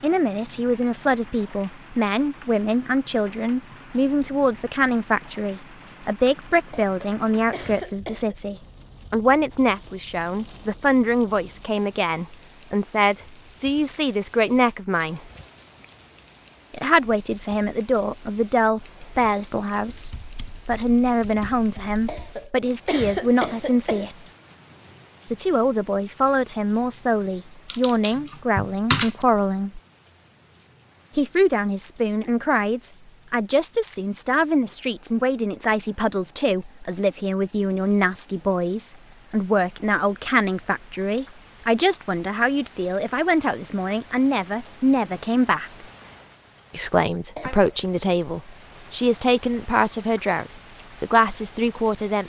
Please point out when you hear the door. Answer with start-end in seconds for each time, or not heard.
not heard.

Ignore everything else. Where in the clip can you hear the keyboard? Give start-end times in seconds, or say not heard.
19.9-22.4, 27.7-29.2.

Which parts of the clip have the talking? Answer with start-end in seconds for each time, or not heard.
0.0-15.2, 16.7-24.3, 25.3-29.8, 31.1-45.9, 46.7-52.2.